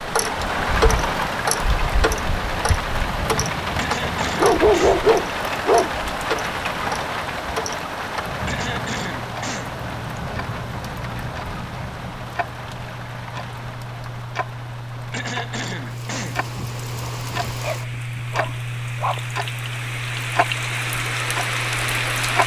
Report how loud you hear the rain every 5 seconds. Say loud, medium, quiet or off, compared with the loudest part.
loud, loud, medium, medium, loud.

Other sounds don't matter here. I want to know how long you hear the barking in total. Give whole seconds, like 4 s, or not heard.
4 s.